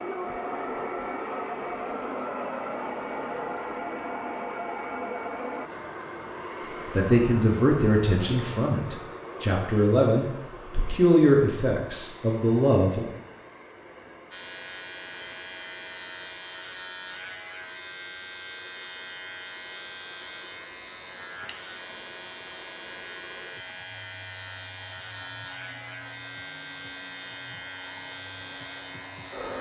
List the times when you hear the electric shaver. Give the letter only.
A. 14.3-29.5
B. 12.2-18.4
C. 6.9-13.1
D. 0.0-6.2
A.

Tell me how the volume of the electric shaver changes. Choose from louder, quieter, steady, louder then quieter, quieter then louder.
steady.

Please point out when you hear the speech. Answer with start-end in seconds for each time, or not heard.
6.9-13.1.